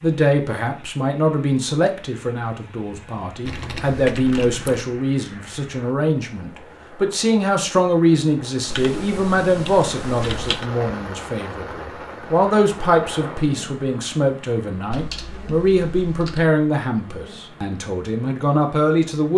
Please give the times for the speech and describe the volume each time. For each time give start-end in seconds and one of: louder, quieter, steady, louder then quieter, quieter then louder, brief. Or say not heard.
0.0-19.3 steady.